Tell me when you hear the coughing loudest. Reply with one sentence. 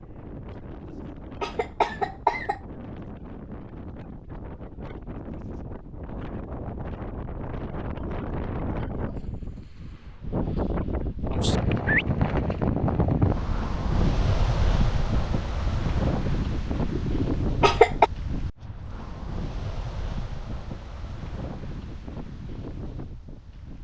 The loudest moment of the coughing is at 18 seconds.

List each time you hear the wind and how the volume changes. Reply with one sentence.
You can hear the wind from 0.0 to 23.7 s, getting louder then quieter.